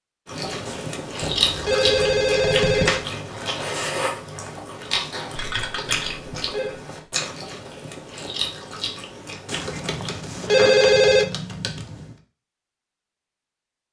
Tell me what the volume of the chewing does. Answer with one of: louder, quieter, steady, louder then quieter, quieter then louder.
quieter.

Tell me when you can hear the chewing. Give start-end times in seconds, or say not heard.
0.2-10.3.